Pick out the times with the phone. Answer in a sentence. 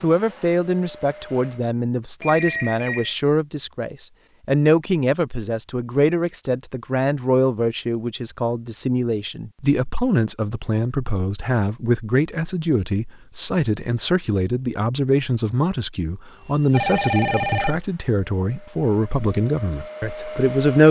You can hear the phone from 2.2 to 3.1 s and from 16.7 to 17.8 s.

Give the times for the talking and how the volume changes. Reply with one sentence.
You can hear the talking from 0.0 to 20.8 s, at a steady volume.